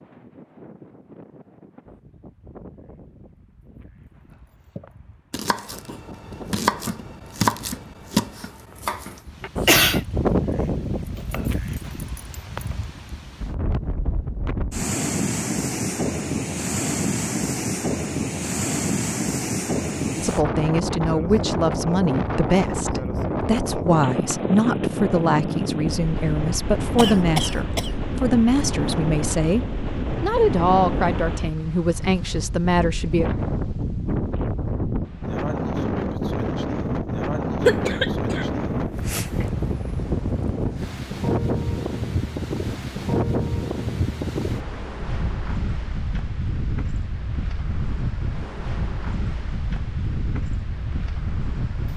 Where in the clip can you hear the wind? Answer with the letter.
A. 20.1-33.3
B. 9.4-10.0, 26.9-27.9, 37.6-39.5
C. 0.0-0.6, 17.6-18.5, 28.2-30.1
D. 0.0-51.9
D.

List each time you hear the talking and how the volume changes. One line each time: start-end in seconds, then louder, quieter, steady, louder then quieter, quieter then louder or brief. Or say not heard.
20.1-33.3 steady.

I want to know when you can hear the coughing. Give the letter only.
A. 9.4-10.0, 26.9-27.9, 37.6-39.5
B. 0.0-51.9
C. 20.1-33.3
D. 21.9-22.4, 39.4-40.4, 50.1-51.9
A.